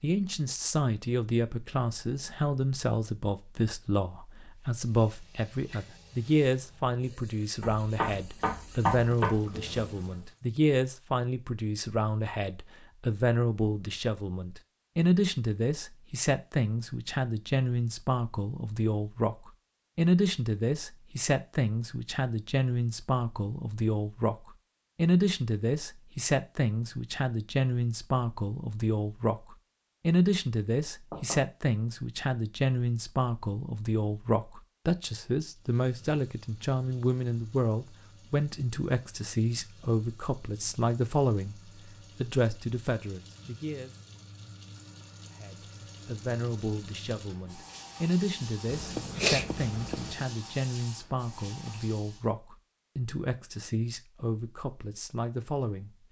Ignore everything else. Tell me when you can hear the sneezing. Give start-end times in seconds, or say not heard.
48.6-50.2.